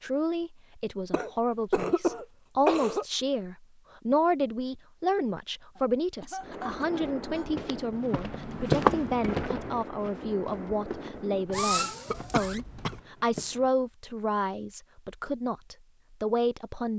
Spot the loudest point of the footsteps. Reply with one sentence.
The volume of the footsteps peaks at 9 seconds.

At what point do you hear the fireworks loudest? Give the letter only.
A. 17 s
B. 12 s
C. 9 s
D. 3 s
B.